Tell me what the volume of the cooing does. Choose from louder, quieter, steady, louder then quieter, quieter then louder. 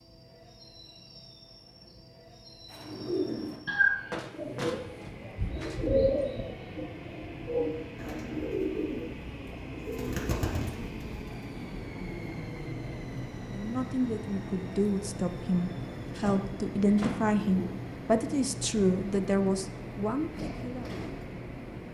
quieter.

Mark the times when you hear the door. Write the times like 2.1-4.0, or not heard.
4.1-5.8, 16.1-17.3.